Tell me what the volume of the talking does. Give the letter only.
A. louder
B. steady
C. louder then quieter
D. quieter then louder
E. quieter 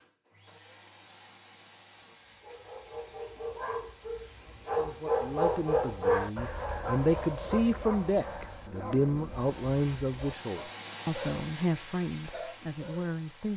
C.